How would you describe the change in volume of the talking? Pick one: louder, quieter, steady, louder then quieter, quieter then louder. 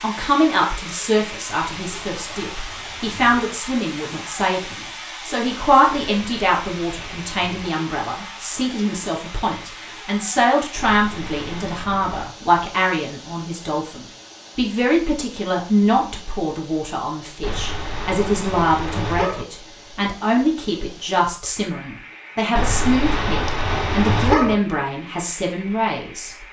steady.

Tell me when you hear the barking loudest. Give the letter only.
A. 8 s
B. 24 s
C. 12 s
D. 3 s
B.